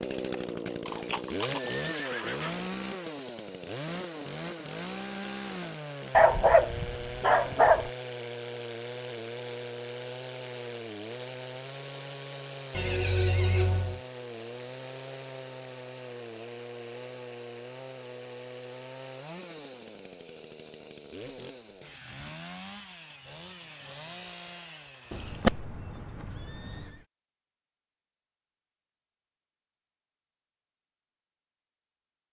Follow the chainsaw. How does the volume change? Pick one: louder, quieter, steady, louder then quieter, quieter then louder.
quieter.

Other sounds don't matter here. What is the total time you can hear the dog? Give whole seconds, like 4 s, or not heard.
2 s.